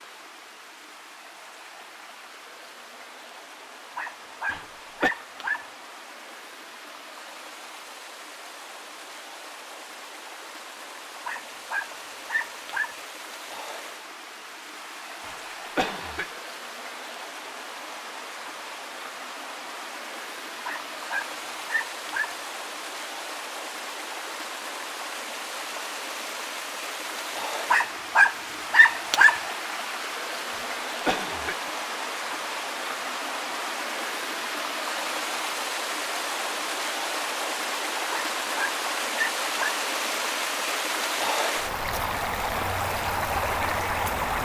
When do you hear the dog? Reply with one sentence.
The dog can be heard from 4.0 to 5.7 s, from 11.2 to 12.9 s, from 20.6 to 22.4 s, from 27.7 to 29.4 s and from 38.1 to 39.8 s.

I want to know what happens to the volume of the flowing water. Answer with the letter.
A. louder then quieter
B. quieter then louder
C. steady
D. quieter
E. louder
E.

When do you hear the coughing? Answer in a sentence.
You can hear the coughing from 4.5 to 5.1 s, from 15.2 to 16.3 s and from 30.5 to 31.7 s.